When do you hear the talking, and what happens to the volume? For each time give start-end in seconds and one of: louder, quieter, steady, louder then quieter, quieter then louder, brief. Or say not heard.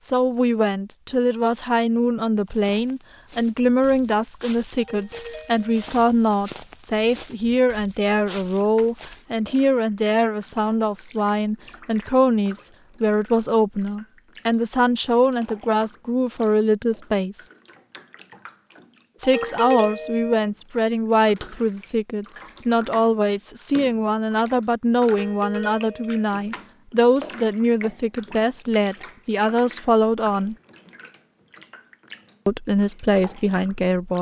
0.0-17.4 steady
19.2-30.6 steady
32.5-34.1 brief.